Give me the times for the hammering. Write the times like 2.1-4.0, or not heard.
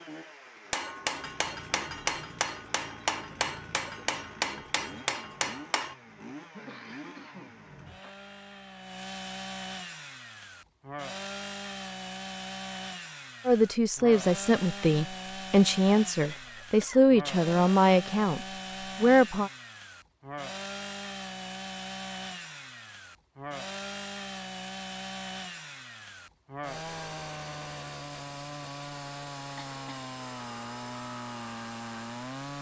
0.7-6.0.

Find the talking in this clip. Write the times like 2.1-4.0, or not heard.
13.4-19.5.